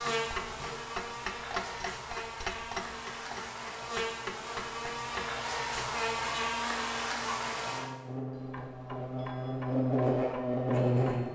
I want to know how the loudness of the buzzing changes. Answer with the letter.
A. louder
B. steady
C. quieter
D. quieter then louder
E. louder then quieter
A.